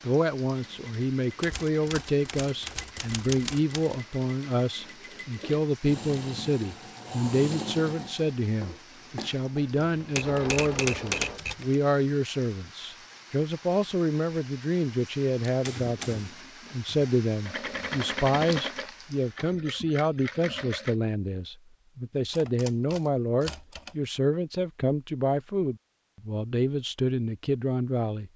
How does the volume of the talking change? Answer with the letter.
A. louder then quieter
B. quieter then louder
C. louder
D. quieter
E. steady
E.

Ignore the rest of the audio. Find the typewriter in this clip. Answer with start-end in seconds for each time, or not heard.
1.4-4.0, 10.2-11.8, 15.6-17.1, 22.3-23.9.